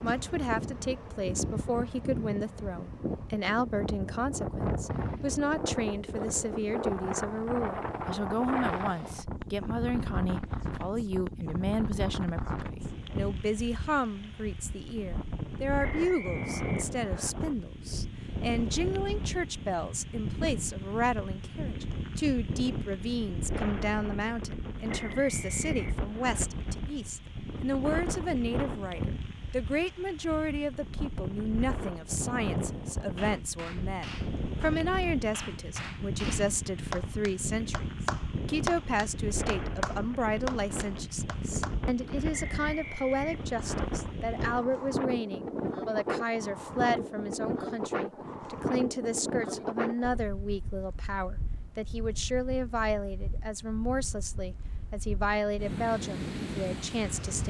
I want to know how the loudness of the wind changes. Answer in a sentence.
The volume of the wind stays about the same.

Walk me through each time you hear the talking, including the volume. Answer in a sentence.
You can hear the talking from 0.0 to 57.4 s, at a steady volume.